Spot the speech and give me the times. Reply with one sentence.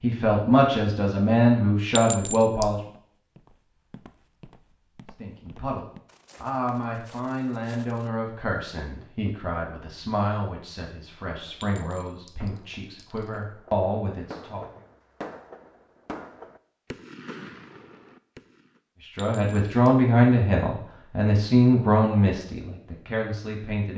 The speech can be heard from 0.0 to 2.8 s, from 5.2 to 14.7 s and from 19.1 to 23.9 s.